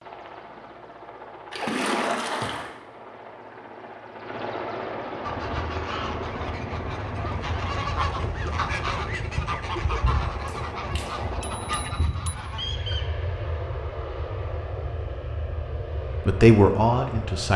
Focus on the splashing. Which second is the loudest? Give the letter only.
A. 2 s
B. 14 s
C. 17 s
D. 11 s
A.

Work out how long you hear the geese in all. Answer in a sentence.
You can hear the geese for 8 seconds altogether.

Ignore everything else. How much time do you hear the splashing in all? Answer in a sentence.
The splashing can be heard for 2 seconds in total.